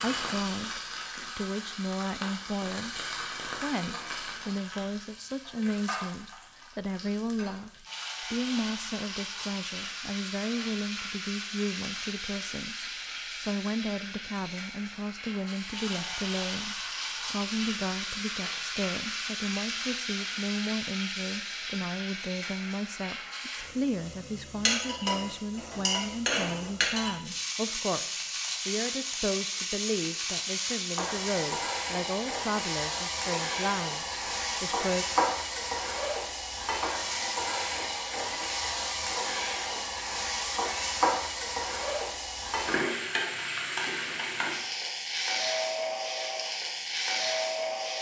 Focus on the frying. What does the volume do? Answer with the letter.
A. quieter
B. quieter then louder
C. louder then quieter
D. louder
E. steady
D.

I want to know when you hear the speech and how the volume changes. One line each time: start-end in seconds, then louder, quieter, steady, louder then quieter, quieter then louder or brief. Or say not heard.
0.0-35.0 steady.